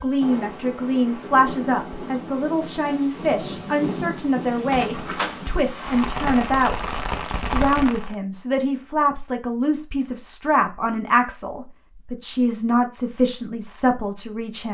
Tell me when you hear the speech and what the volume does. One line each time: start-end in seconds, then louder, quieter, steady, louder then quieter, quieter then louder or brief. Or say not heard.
0.0-14.6 steady.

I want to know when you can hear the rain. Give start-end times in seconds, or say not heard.
0.0-8.2.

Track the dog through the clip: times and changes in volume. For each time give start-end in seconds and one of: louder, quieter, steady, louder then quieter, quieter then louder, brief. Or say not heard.
not heard.